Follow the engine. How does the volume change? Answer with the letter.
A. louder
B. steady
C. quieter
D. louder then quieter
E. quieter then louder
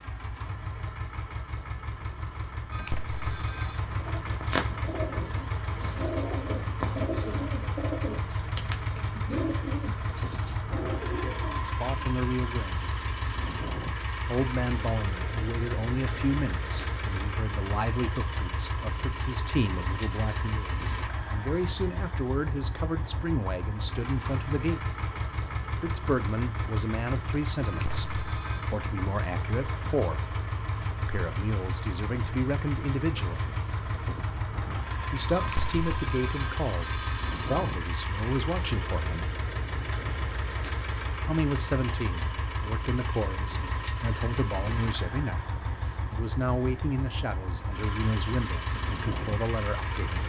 B.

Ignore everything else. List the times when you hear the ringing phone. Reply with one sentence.
You can hear the ringing phone from 2.7 to 3.8 s, from 27.6 to 28.7 s and from 35.4 to 37.8 s.